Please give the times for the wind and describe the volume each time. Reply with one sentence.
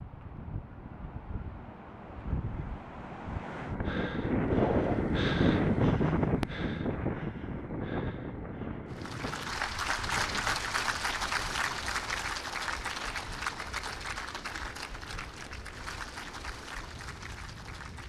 The wind can be heard from 0.0 to 18.0 s, getting louder then quieter.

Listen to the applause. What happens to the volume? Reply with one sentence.
The loudness of the applause goes down.